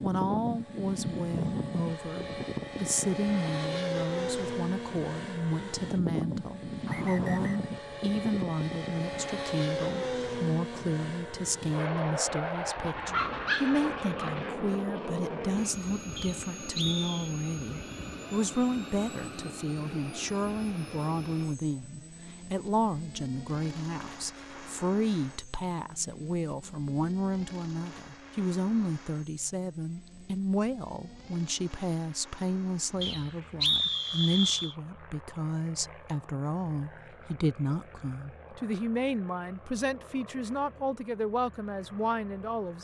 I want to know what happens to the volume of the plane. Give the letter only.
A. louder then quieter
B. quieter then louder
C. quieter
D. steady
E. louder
C.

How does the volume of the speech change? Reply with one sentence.
The loudness of the speech stays about the same.